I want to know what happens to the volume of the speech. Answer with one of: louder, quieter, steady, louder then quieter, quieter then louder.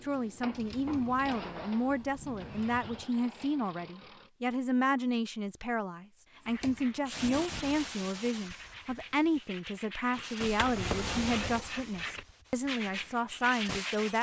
steady.